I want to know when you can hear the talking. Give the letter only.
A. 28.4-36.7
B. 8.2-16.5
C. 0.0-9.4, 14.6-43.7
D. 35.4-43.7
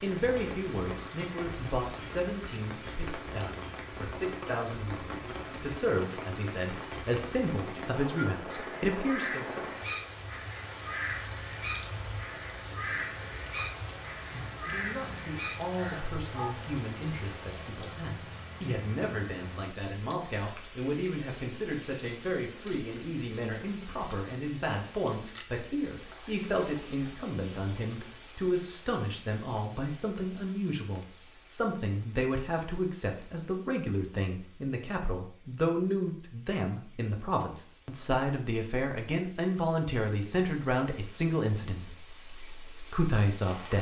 C.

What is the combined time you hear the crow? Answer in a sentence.
The crow can be heard for 8 seconds in total.